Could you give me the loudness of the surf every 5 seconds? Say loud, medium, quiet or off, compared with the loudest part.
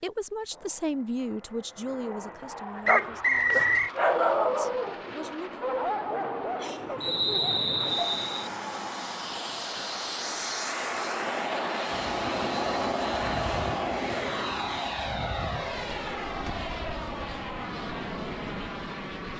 off, loud, loud, loud.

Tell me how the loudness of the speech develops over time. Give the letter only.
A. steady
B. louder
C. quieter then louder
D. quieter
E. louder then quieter
C.